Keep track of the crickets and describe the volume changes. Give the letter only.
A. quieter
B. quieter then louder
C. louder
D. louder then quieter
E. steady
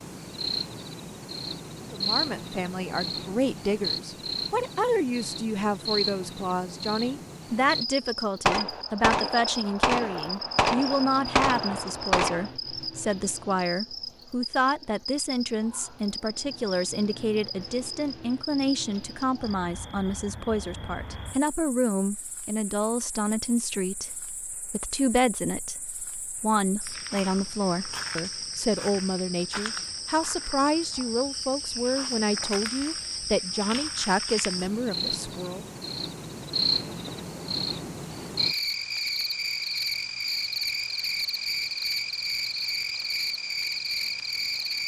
B.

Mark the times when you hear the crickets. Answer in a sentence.
You can hear the crickets from 0.0 to 44.8 s.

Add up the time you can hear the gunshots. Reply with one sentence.
The gunshots can be heard for 4 seconds in total.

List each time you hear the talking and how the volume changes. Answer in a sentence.
You can hear the talking from 1.9 to 35.6 s, at a steady volume.